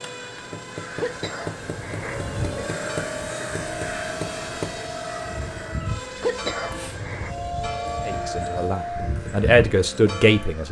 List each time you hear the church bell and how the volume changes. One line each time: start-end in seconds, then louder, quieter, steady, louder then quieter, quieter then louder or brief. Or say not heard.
2.2-10.6 louder.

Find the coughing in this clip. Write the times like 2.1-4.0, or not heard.
0.9-2.7, 6.2-7.3.